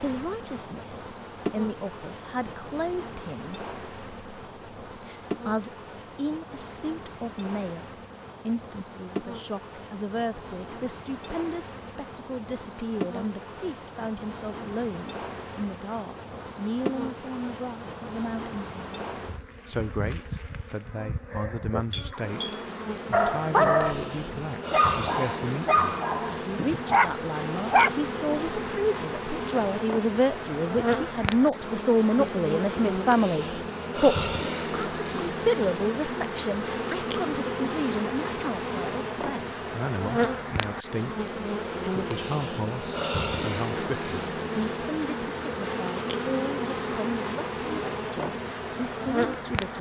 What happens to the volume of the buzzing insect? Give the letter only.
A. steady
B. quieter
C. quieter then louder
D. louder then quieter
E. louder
E.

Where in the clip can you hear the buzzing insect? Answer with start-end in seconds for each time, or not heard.
0.0-49.7.